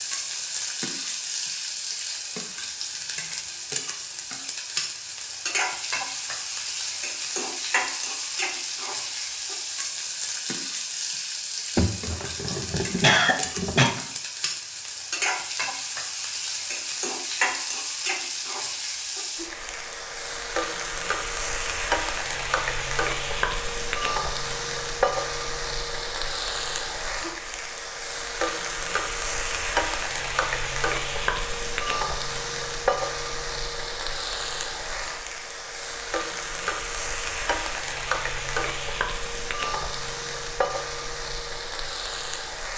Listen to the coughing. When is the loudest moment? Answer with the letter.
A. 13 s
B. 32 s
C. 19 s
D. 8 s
A.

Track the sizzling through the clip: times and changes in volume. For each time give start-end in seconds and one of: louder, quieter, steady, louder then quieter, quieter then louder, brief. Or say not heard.
0.0-42.7 steady.